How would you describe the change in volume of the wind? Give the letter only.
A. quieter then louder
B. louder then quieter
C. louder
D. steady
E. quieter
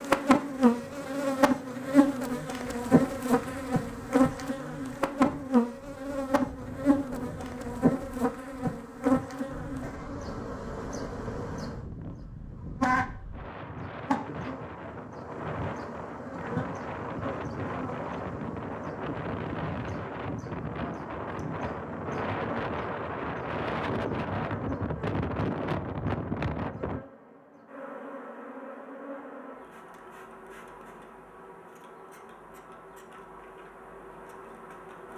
C.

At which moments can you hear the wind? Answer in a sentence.
You can hear the wind from 0.0 to 27.1 s.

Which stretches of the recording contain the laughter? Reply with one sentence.
The laughter can't be heard in this clip.